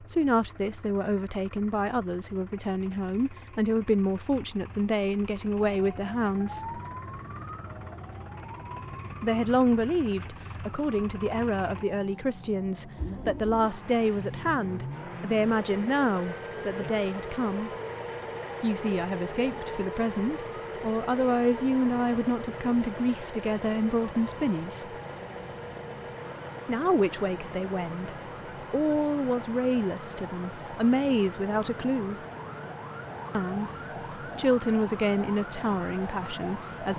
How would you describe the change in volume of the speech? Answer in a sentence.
The loudness of the speech stays about the same.